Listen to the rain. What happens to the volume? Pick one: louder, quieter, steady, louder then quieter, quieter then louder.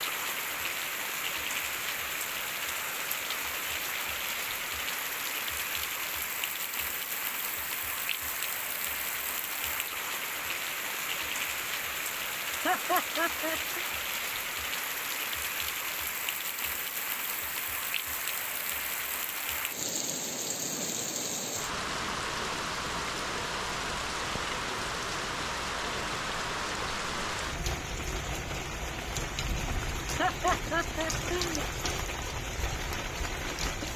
steady.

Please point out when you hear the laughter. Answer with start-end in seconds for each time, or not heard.
12.6-13.8, 30.1-31.6.